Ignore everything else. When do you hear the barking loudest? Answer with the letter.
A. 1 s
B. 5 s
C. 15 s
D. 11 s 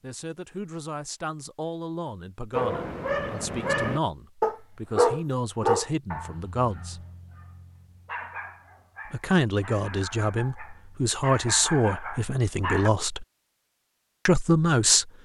B.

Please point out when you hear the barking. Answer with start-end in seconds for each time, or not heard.
2.5-12.9.